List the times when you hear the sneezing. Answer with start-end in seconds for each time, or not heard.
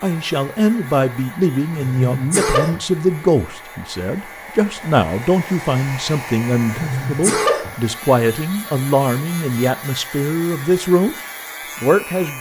1.8-3.2, 6.7-7.8.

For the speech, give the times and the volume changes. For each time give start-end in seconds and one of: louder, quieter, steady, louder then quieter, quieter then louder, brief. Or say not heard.
0.0-11.2 steady
11.8-12.3 brief.